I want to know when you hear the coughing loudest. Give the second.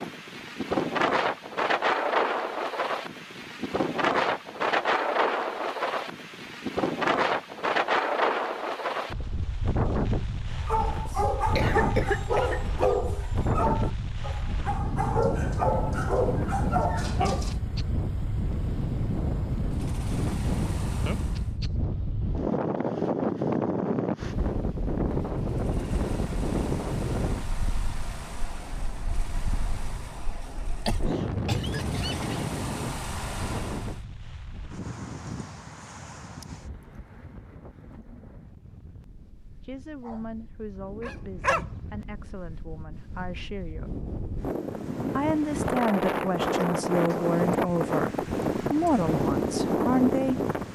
12 s.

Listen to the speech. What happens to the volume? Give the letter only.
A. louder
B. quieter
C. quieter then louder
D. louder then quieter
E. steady
A.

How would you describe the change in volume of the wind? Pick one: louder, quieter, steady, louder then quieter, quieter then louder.
quieter then louder.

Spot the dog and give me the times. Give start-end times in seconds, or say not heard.
10.6-17.6, 40.0-41.9.